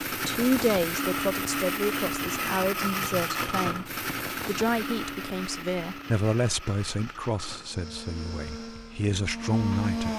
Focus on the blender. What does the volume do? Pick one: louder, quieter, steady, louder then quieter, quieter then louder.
quieter then louder.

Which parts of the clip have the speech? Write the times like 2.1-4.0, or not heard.
0.1-10.1.